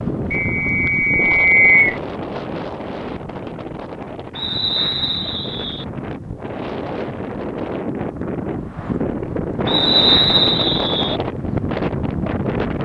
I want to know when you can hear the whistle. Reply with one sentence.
You can hear the whistle from 0.3 to 2.0 s, from 4.3 to 5.8 s and from 9.7 to 11.2 s.